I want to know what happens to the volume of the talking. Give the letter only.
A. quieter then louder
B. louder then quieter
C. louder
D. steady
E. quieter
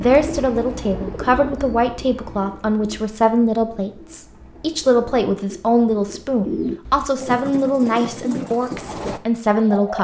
D.